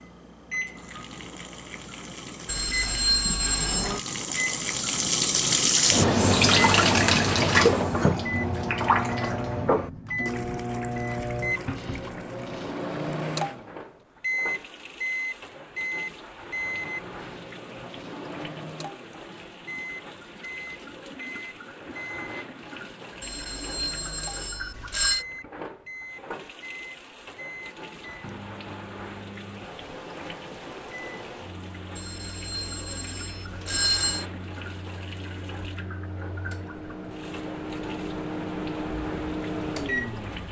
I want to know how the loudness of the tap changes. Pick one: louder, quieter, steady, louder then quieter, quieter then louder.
quieter.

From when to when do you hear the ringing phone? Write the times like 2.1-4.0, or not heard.
2.5-4.0, 23.2-25.2, 31.9-34.2.